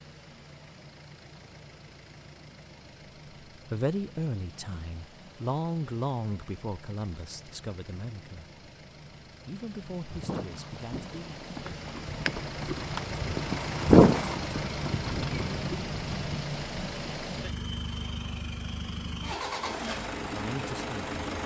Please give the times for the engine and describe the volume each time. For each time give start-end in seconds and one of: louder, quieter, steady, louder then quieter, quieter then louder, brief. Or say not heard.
0.0-21.4 louder.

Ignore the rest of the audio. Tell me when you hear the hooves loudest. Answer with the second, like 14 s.
14 s.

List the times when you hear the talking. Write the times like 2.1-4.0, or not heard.
3.7-8.4, 9.4-11.4, 20.3-21.1.